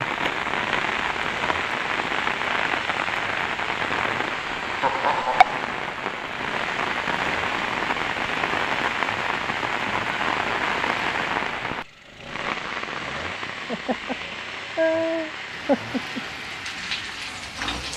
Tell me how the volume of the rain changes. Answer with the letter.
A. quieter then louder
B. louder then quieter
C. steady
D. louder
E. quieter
E.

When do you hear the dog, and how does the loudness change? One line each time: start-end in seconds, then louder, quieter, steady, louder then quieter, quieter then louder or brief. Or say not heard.
not heard.